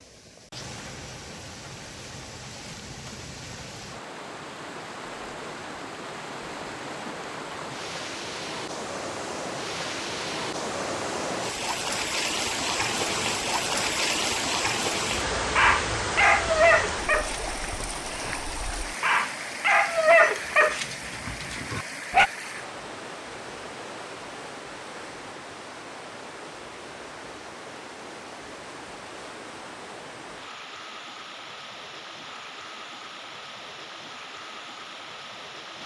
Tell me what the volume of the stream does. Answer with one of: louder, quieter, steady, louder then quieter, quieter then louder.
louder then quieter.